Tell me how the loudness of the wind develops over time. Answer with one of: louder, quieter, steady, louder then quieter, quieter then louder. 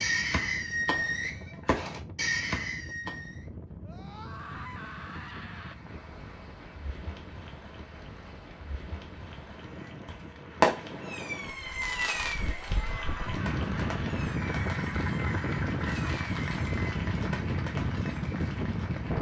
louder.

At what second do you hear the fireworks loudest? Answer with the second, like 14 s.
11 s.